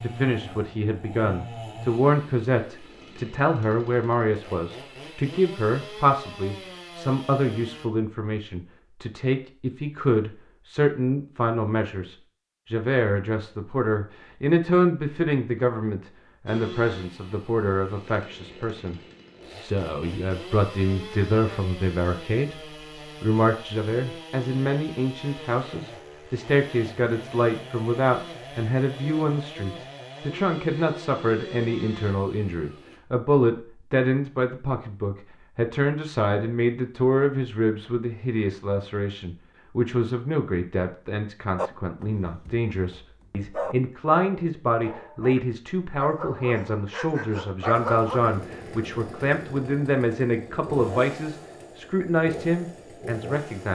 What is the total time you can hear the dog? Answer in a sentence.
The dog can be heard for 7 seconds in total.